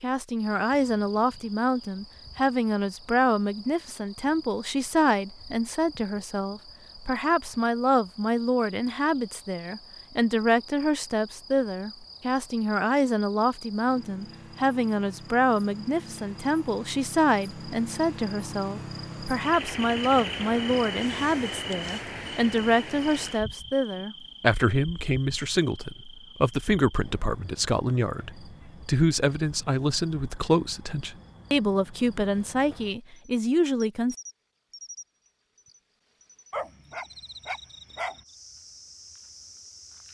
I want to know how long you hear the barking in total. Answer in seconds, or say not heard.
2 s.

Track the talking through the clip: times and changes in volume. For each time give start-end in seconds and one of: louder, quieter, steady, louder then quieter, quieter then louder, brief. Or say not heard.
0.0-34.1 steady.